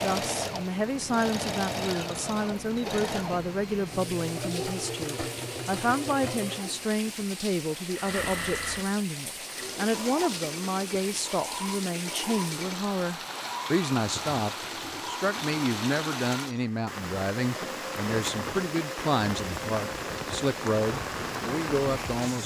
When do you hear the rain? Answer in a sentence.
You can hear the rain from 0.1 to 22.4 s.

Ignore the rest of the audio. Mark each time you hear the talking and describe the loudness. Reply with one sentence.
The talking can be heard from 0.0 to 22.4 s, at a steady volume.